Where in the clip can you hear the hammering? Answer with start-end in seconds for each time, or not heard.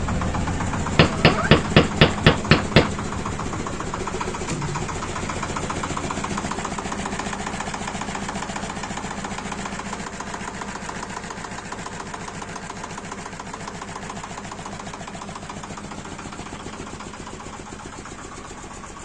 0.9-2.9.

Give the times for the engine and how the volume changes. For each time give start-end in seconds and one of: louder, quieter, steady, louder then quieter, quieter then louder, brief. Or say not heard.
0.0-18.9 quieter.